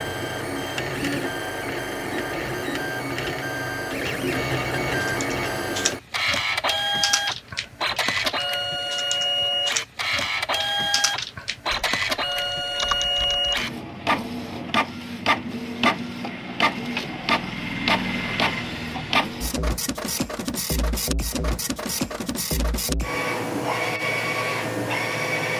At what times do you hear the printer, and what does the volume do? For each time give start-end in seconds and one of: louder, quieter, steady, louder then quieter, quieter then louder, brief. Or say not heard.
0.0-25.5 steady.